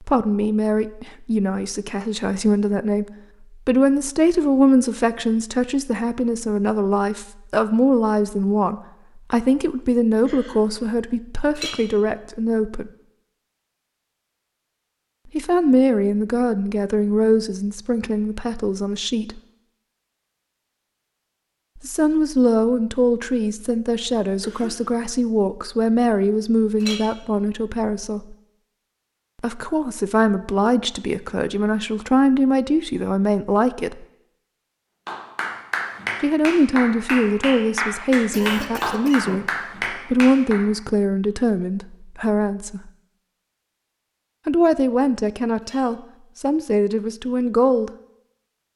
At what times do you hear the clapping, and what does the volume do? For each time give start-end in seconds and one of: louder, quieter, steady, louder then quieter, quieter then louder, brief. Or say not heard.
35.0-40.6 steady.